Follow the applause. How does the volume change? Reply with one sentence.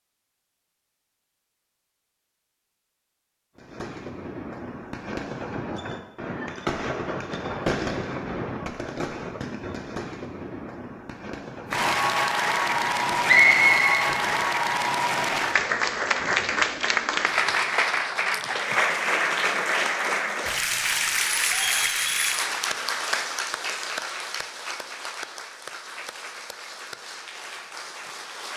The loudness of the applause goes down.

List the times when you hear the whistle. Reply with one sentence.
You can hear the whistle from 13.2 to 14.1 s.